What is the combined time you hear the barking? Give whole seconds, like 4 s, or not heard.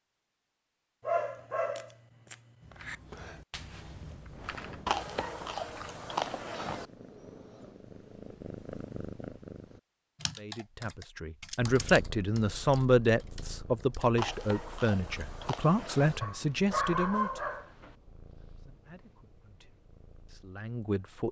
4 s.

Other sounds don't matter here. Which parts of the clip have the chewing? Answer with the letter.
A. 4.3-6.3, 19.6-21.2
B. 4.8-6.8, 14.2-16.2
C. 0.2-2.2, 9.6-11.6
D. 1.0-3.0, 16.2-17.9
B.